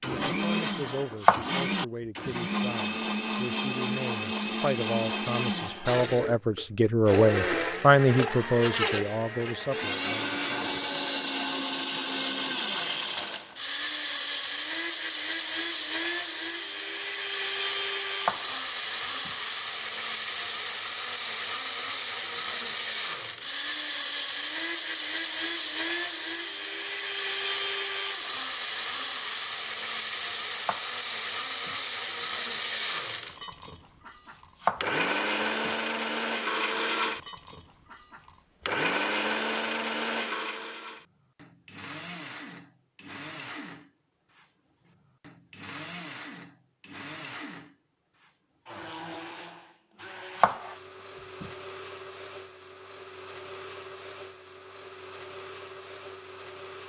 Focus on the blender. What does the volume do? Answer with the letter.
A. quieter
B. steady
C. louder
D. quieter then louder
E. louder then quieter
A.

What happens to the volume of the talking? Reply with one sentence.
The loudness of the talking goes up, then down.